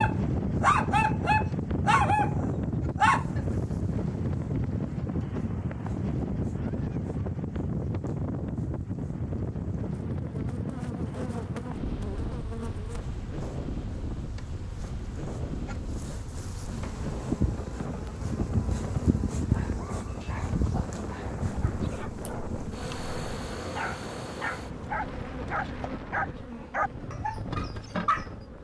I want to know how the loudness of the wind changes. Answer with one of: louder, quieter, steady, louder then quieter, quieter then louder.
quieter.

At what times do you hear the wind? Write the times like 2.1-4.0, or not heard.
0.0-28.5.